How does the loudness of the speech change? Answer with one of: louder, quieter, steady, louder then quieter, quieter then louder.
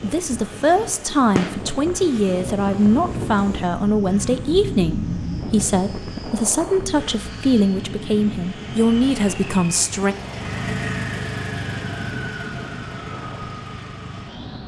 steady.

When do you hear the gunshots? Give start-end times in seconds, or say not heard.
1.4-1.8.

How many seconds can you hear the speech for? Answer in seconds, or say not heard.
10 s.